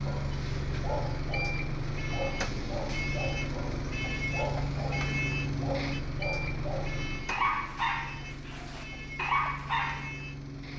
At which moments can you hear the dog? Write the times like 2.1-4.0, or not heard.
0.1-10.1.